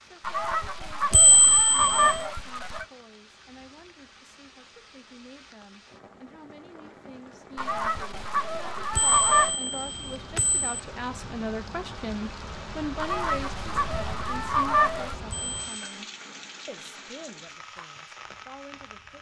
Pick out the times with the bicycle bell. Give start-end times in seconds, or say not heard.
1.1-2.1, 8.9-10.8, 15.3-16.0.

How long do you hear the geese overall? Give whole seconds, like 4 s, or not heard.
7 s.